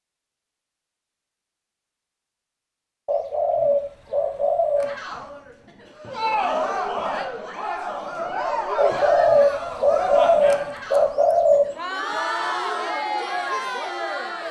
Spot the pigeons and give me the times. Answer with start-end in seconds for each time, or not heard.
3.0-4.9, 8.8-11.7.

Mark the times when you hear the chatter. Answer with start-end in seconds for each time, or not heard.
4.8-14.4.